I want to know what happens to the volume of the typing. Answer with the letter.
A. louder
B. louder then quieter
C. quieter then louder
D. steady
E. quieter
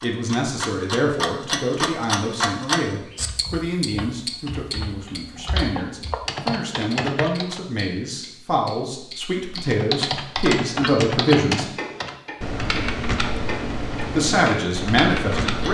A.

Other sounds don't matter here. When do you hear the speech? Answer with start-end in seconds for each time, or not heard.
0.0-11.7, 14.0-15.7.